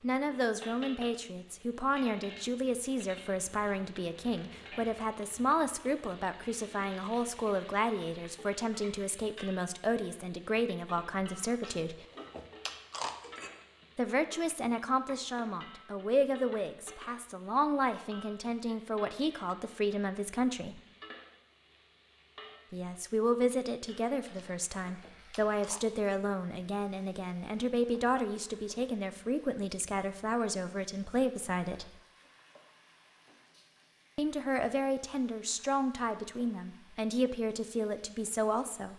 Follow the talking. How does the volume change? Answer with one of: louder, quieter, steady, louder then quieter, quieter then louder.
steady.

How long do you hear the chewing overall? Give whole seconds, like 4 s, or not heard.
4 s.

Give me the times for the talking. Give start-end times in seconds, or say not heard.
0.0-12.1, 13.9-20.8, 22.7-32.0, 34.1-38.9.